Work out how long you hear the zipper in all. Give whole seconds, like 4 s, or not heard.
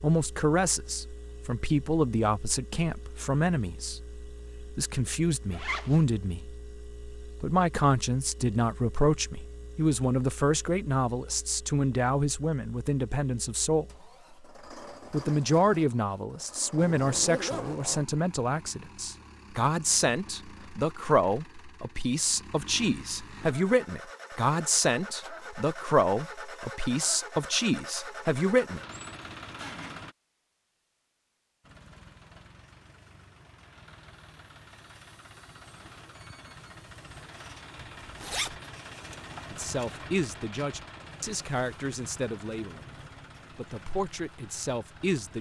3 s.